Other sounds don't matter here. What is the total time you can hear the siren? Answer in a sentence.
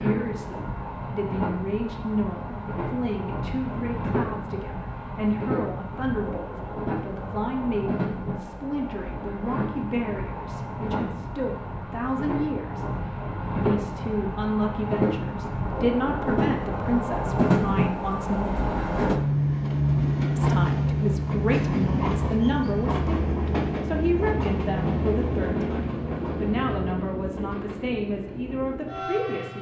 You can't hear the siren here.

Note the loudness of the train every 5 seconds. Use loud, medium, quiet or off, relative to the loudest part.
medium, medium, medium, loud, loud, medium.